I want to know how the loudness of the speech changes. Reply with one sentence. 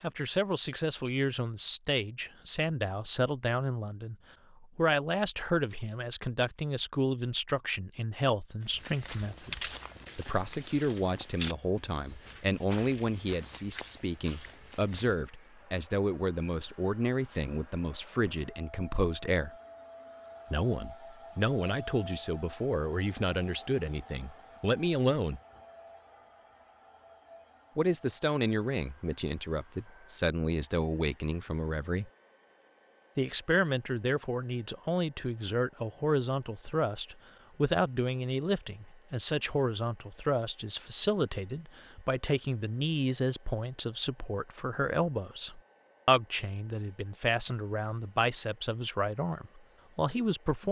The loudness of the speech stays about the same.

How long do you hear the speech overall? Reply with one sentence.
You can hear the speech for 46 seconds altogether.